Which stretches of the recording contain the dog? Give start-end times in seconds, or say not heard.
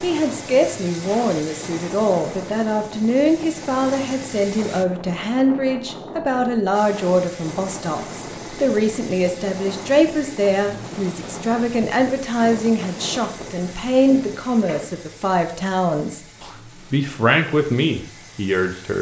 not heard.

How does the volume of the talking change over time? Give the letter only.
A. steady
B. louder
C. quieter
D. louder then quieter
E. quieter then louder
A.